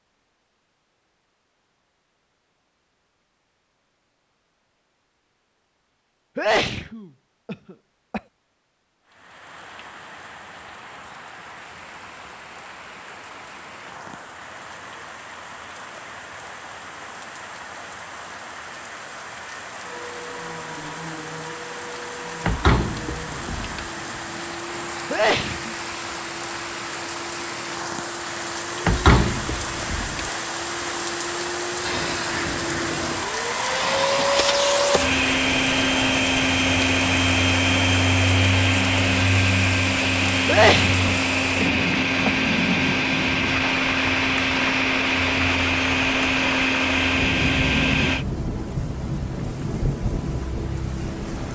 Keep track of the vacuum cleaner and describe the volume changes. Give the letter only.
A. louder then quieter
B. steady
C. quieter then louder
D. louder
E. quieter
D.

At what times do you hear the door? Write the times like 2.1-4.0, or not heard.
22.4-23.9, 28.9-30.3.